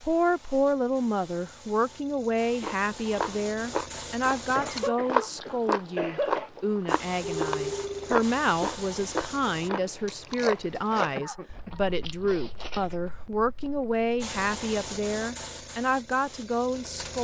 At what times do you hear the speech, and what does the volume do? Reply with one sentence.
You can hear the speech from 0.0 to 17.1 s, at a steady volume.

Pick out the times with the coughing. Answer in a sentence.
You can hear the coughing from 4.5 to 6.5 s and from 10.9 to 12.4 s.